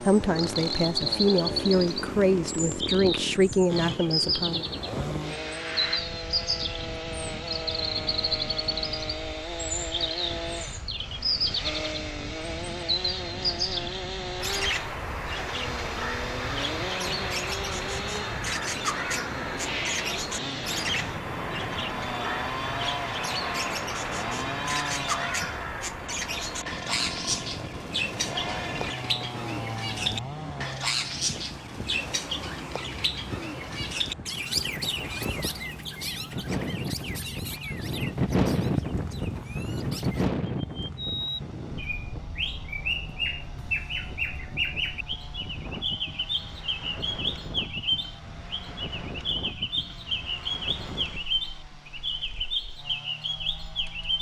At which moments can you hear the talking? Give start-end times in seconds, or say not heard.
0.0-4.7.